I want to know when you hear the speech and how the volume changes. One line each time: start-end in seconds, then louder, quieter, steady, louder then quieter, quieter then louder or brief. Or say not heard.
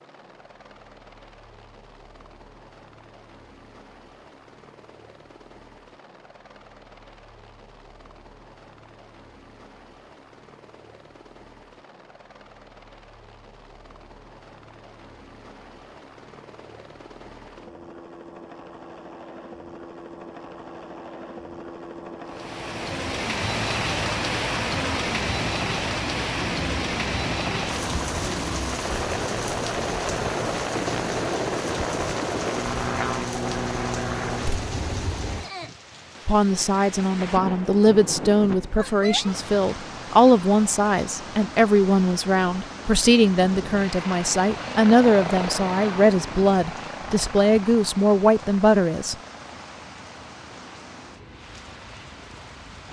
36.2-49.1 steady.